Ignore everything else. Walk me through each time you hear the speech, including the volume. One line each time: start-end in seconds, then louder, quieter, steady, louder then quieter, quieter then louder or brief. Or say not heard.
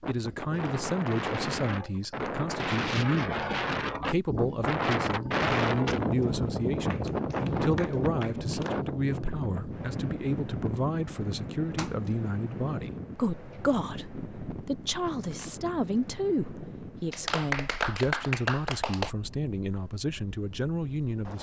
0.1-21.3 steady.